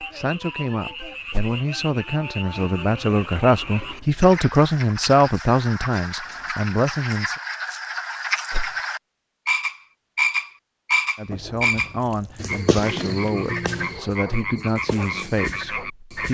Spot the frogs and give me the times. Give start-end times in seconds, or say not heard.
0.0-16.3.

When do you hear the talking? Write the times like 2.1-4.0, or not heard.
0.0-7.3, 11.2-16.3.